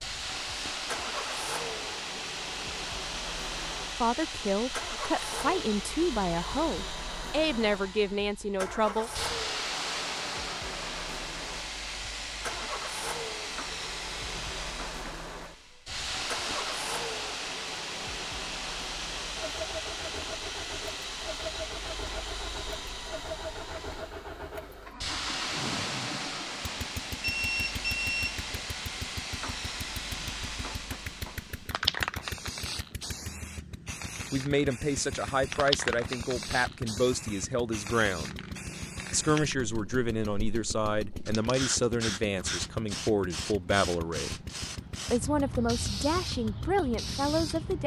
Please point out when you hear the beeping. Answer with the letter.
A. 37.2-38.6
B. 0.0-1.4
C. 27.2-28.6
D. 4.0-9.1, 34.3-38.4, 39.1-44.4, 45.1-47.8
C.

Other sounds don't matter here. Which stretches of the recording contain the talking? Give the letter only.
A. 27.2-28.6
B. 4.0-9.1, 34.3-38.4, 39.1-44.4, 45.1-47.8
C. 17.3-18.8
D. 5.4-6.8
B.